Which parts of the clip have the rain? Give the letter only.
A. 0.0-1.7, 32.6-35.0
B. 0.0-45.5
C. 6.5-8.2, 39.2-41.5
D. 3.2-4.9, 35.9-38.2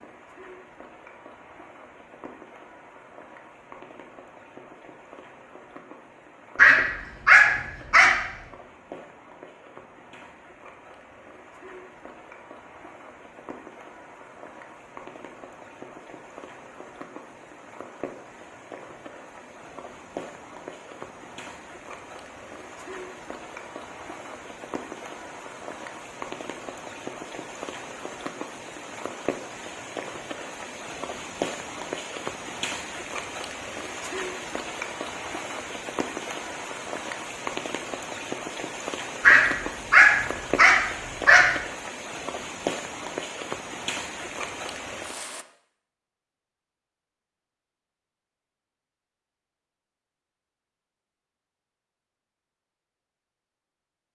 B.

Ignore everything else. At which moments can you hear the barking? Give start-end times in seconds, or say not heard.
6.5-8.2, 39.2-41.5.